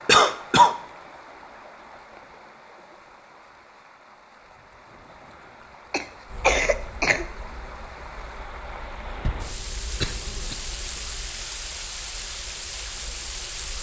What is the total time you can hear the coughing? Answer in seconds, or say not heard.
4 s.